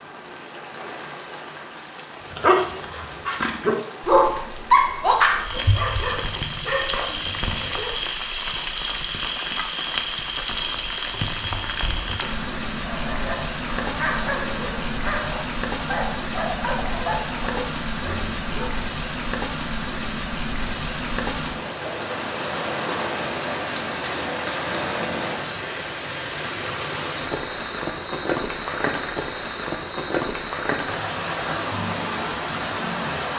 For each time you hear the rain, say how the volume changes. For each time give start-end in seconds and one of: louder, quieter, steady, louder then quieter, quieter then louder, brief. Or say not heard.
0.0-33.3 louder.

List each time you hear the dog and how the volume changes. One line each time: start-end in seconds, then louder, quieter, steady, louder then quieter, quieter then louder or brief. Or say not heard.
2.3-8.0 louder then quieter
12.8-18.8 quieter.